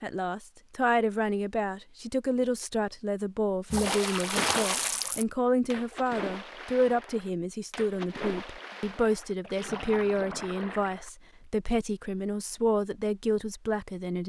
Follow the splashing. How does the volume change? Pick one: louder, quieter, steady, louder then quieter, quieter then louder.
quieter.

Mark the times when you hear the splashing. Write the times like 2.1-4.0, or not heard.
3.7-11.4.